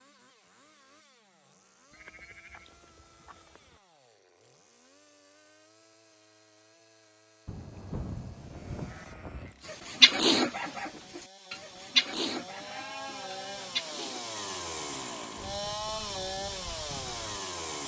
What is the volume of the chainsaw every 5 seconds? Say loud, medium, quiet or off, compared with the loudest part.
quiet, quiet, medium, loud.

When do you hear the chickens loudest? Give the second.
10 s.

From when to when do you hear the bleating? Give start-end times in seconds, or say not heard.
1.9-3.8, 7.5-9.6, 12.3-13.8.